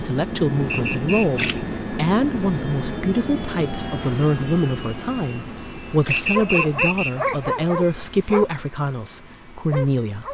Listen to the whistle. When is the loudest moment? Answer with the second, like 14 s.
7 s.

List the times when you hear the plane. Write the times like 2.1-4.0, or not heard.
0.0-10.3.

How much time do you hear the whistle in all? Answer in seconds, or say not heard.
2 s.